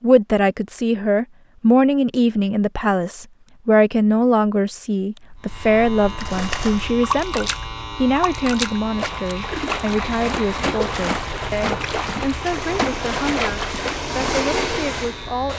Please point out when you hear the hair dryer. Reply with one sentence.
You can hear the hair dryer from 12.3 to 15.5 s.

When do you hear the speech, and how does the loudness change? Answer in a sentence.
You can hear the speech from 0.0 to 15.5 s, getting quieter.